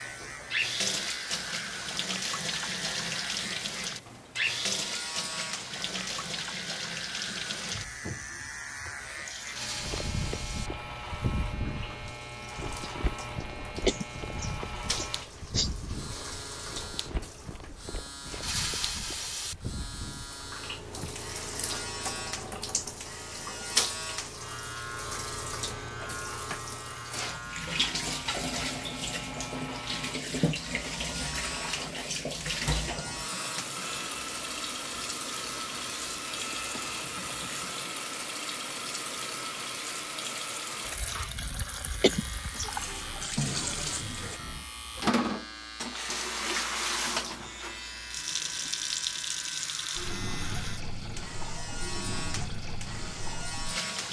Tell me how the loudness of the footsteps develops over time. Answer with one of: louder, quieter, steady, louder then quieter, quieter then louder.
quieter.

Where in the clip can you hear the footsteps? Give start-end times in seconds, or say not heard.
9.8-21.1.